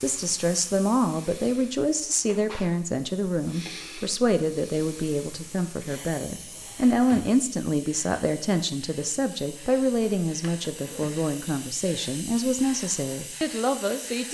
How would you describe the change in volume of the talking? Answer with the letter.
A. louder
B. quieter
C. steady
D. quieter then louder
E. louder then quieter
C.